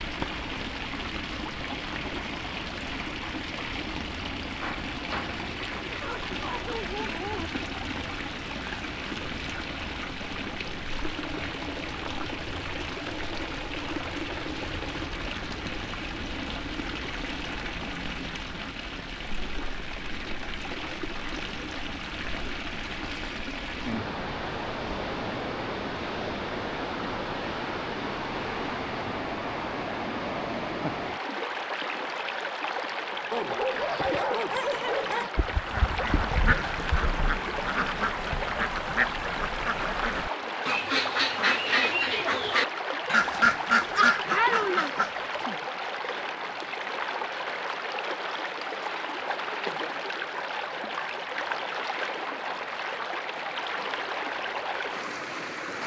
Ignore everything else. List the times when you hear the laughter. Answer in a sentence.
You can't hear the laughter here.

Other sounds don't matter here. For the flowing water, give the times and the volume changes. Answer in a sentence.
You can hear the flowing water from 0.0 to 55.8 s, at a steady volume.